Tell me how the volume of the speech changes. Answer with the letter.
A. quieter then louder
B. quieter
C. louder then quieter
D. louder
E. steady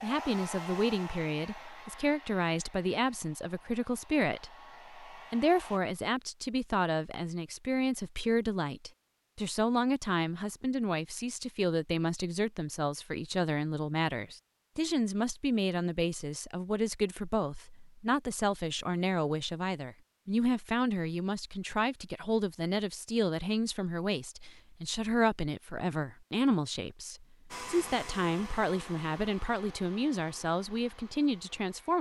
E.